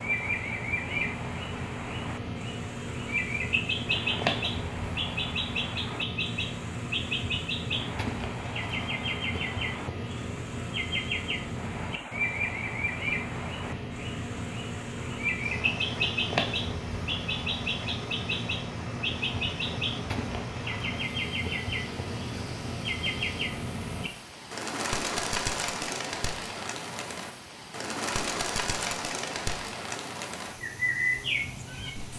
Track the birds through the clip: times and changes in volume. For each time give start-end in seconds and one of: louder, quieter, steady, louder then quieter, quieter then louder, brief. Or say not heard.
0.0-32.1 steady.